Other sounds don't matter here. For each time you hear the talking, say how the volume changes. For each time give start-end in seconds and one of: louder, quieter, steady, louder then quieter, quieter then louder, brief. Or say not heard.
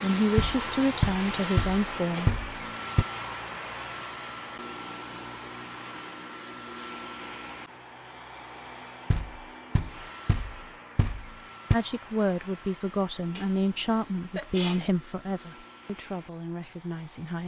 0.0-2.3 brief
11.7-17.4 quieter.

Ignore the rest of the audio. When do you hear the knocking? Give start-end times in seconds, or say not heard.
0.3-3.0, 9.1-11.8.